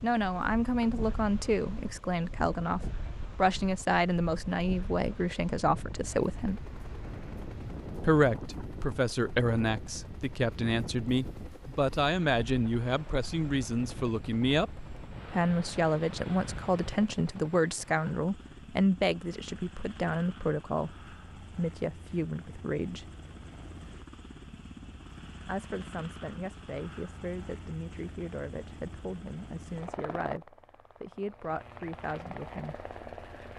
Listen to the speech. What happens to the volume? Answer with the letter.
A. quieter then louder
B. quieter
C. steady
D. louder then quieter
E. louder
B.